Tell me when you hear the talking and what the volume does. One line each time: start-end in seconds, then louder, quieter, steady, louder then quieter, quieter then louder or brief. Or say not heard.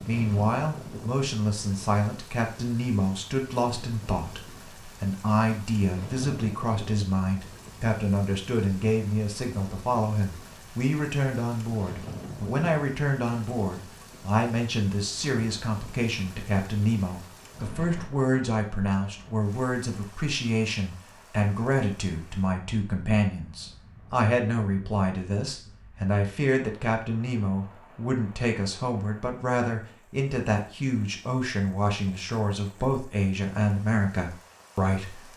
0.1-35.3 steady.